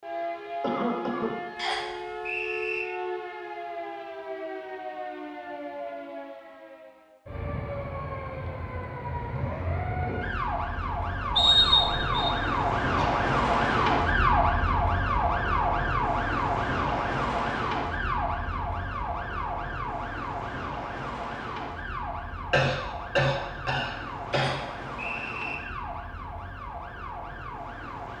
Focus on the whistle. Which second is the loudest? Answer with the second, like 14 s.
12 s.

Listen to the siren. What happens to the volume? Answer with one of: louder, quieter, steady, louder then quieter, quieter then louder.
louder then quieter.